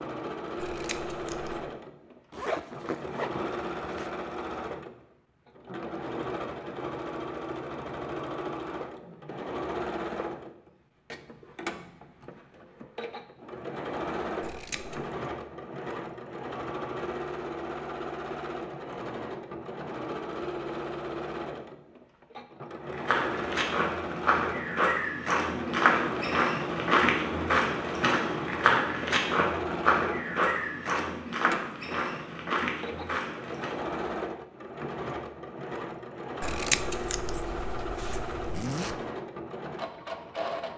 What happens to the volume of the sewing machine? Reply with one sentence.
The volume of the sewing machine stays about the same.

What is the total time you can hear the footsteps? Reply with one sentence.
The footsteps can be heard for 11 seconds in total.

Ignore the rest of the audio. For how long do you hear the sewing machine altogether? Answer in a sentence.
You can hear the sewing machine for 41 seconds altogether.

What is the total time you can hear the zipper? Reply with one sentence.
You can hear the zipper for 2 seconds altogether.